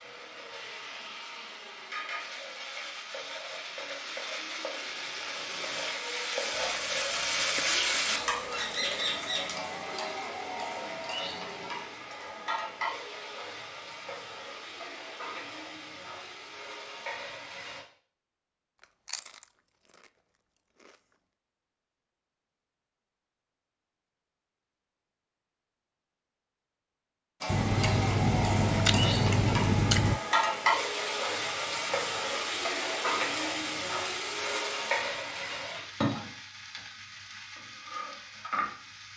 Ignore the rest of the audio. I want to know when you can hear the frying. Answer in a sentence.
You can hear the frying from 0.0 to 17.9 s and from 27.4 to 39.1 s.